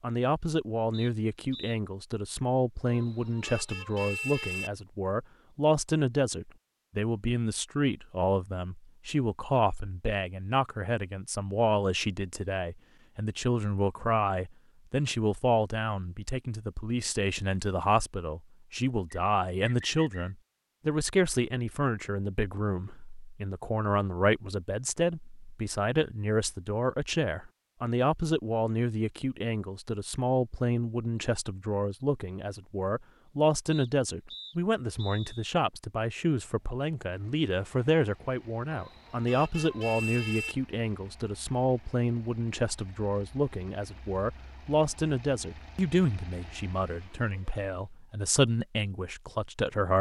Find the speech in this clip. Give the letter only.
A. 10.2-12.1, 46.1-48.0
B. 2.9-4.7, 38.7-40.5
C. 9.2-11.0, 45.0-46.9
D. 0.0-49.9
D.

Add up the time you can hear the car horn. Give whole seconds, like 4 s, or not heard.
4 s.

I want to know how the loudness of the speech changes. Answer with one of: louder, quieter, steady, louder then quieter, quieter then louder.
steady.